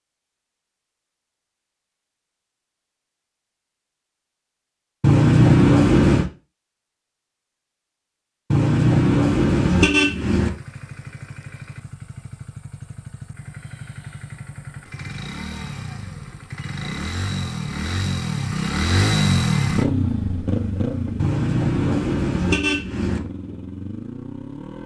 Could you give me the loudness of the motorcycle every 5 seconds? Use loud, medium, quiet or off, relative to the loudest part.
off, off, quiet, loud, medium.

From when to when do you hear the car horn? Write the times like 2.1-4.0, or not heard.
5.0-6.3, 8.5-10.5, 21.1-23.2.